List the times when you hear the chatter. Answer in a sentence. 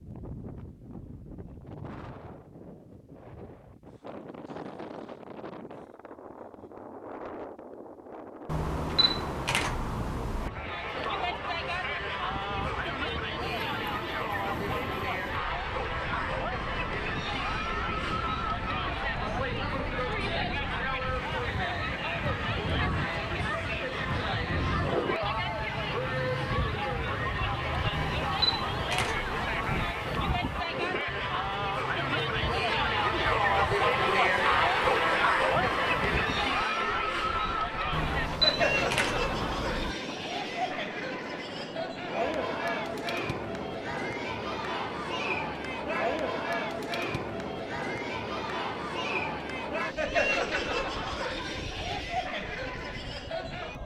You can hear the chatter from 10.4 to 53.8 s.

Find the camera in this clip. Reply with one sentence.
The camera can be heard from 8.4 to 10.5 s, from 27.9 to 29.9 s and from 37.9 to 40.0 s.